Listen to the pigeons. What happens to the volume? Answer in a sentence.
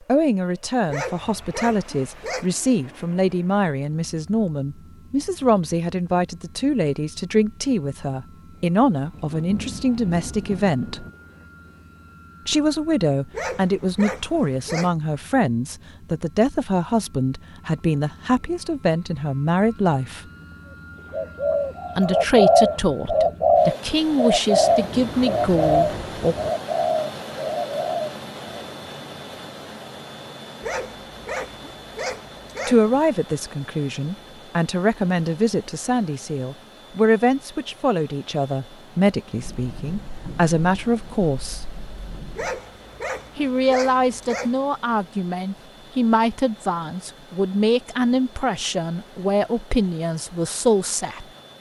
The loudness of the pigeons goes down.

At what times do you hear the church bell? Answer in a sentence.
You can't hear the church bell here.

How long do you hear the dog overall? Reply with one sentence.
You can hear the dog for 8 seconds altogether.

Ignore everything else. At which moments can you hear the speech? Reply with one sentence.
You can hear the speech from 0.1 to 11.1 s, from 12.4 to 20.2 s, from 21.9 to 26.4 s, from 32.6 to 41.6 s and from 43.4 to 51.2 s.